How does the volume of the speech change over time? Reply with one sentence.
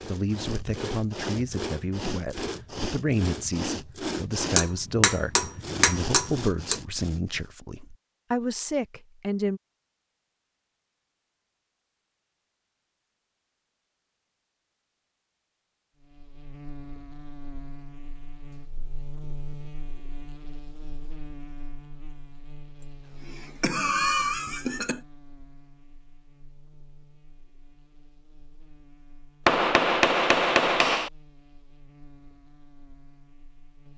The volume of the speech stays about the same.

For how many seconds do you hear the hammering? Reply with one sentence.
You can hear the hammering for 4 seconds altogether.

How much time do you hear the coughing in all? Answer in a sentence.
You can hear the coughing for 2 seconds altogether.